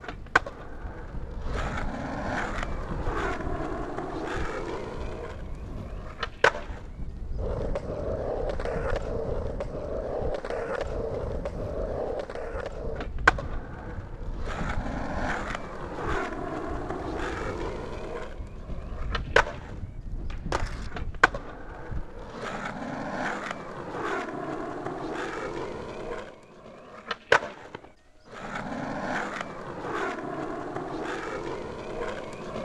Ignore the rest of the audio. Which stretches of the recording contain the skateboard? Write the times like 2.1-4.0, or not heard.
0.0-32.5.